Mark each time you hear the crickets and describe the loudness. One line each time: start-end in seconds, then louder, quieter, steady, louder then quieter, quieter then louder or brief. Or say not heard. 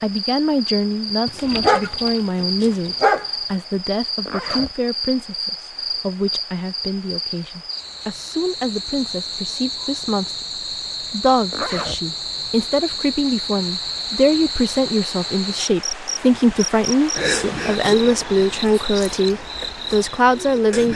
0.0-20.9 steady.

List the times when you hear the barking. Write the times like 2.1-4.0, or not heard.
1.2-3.2.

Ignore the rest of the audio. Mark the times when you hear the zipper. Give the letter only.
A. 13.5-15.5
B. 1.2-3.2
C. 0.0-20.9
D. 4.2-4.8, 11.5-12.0
D.